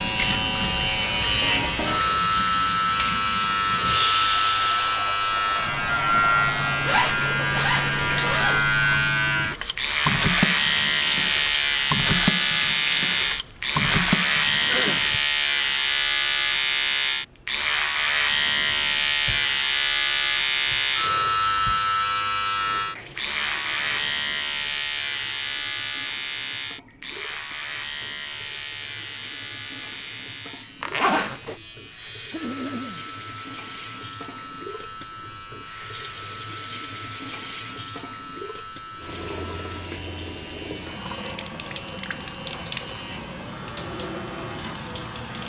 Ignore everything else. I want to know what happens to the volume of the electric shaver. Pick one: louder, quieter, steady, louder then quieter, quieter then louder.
quieter.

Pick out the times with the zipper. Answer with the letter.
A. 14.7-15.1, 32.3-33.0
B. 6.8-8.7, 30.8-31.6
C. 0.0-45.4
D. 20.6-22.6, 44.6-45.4
B.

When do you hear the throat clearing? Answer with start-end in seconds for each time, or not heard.
14.7-15.1, 32.3-33.0.